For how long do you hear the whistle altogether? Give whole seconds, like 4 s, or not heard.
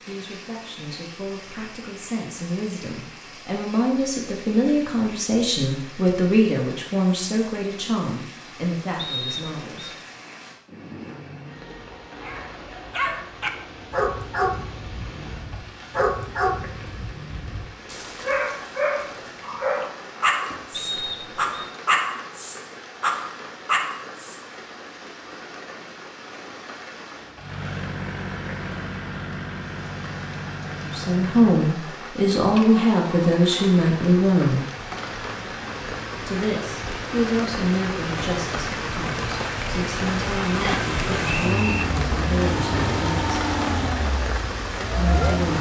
3 s.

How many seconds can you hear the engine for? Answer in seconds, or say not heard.
18 s.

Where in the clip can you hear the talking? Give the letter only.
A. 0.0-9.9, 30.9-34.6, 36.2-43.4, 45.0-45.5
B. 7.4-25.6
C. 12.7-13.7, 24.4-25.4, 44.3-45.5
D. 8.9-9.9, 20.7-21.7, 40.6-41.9
A.